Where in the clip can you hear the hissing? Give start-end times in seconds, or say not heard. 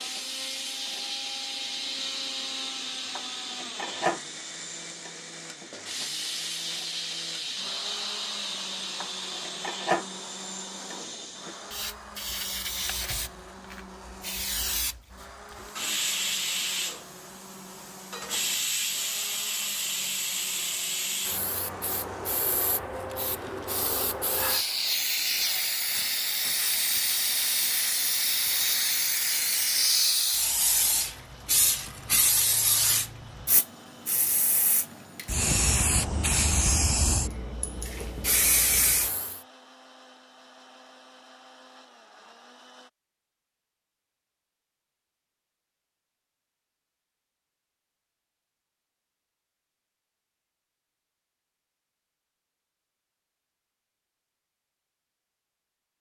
0.0-39.4.